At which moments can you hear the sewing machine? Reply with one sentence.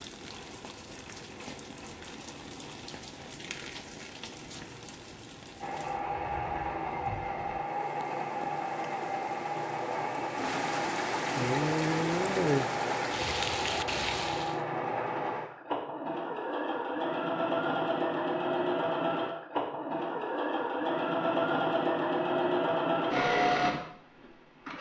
You can hear the sewing machine from 5.6 to 24.7 s.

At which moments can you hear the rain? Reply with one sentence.
You can hear the rain from 0.0 to 14.6 s.